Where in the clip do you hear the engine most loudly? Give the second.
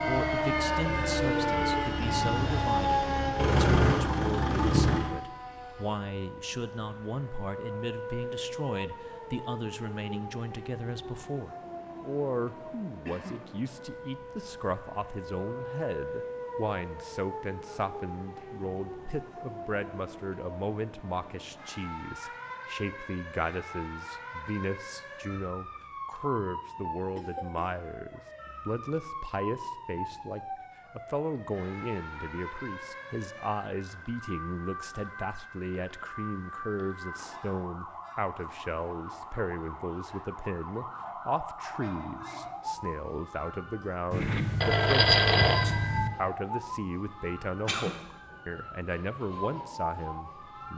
4 s.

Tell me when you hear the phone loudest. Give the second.
45 s.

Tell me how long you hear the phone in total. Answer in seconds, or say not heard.
3 s.